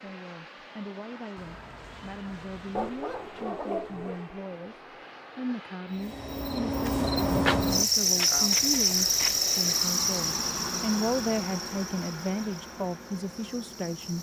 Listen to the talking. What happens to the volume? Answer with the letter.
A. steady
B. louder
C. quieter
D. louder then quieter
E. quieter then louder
B.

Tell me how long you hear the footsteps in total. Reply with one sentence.
The footsteps can't be heard in this clip.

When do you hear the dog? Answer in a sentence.
The dog can be heard from 2.8 to 4.2 s.